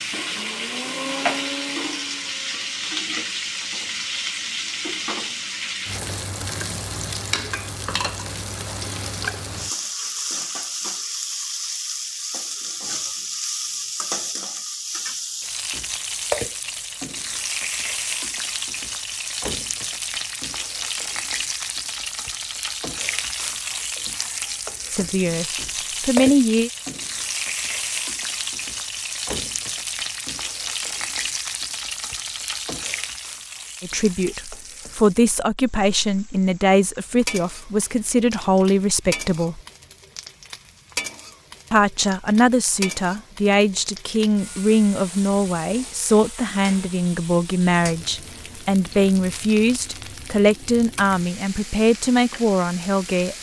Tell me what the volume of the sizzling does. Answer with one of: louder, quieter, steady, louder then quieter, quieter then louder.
quieter.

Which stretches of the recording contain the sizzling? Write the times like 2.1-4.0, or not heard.
0.0-53.3.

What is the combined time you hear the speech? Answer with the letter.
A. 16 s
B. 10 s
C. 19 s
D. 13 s
C.